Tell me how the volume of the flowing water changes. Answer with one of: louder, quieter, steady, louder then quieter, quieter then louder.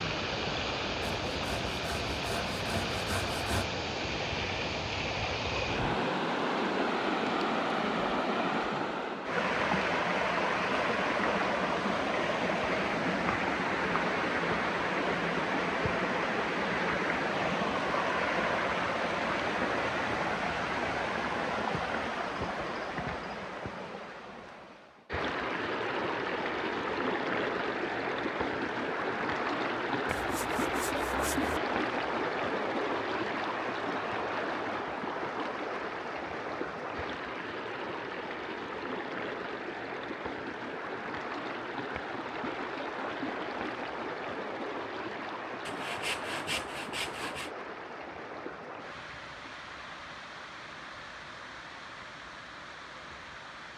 quieter.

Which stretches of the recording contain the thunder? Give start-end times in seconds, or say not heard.
not heard.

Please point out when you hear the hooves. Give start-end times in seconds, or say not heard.
not heard.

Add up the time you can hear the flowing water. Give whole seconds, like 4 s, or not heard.
54 s.